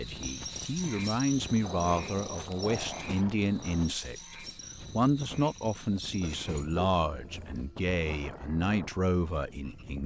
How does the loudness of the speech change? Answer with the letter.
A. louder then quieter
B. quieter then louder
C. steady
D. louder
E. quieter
C.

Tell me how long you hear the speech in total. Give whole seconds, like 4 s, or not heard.
10 s.